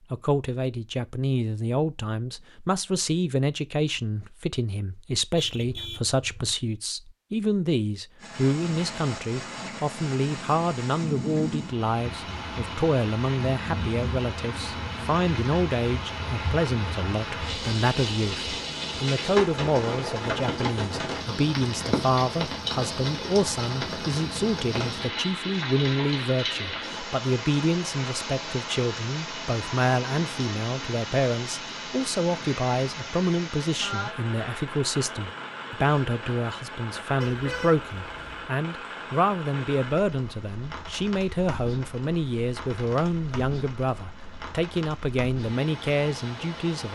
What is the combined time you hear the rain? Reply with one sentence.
You can hear the rain for 39 seconds altogether.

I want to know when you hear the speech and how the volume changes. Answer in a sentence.
The speech can be heard from 0.1 to 46.9 s, at a steady volume.